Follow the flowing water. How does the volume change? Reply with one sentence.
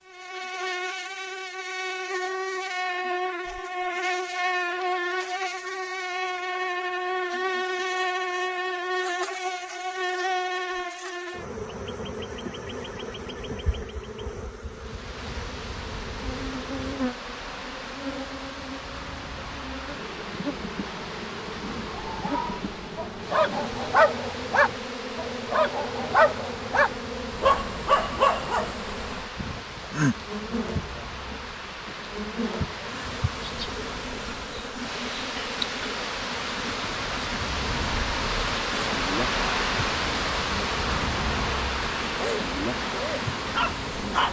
The loudness of the flowing water goes up.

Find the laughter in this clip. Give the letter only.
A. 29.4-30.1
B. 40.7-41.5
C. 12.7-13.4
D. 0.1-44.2
A.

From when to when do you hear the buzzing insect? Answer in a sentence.
The buzzing insect can be heard from 0.1 to 44.2 s.